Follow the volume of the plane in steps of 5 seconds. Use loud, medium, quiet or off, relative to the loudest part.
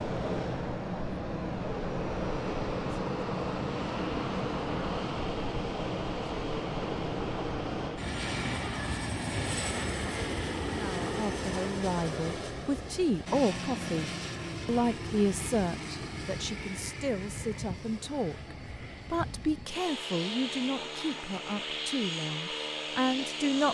loud, loud, loud, medium, loud.